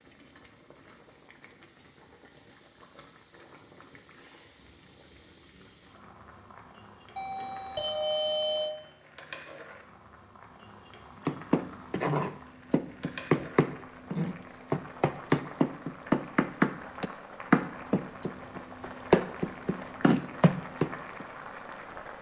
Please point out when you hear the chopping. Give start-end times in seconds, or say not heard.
11.2-21.2.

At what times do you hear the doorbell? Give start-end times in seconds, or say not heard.
7.2-8.7.